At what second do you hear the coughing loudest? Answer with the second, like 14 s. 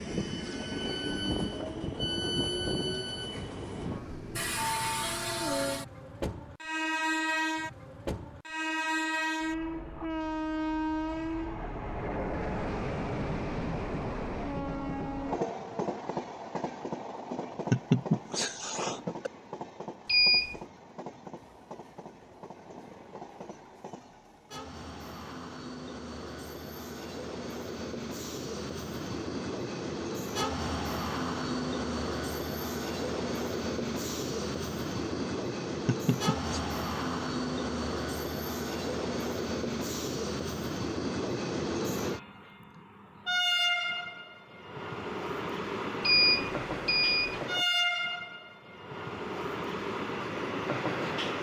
18 s.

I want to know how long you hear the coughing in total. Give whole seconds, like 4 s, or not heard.
2 s.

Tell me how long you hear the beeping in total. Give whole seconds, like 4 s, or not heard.
2 s.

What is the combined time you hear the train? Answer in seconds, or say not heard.
51 s.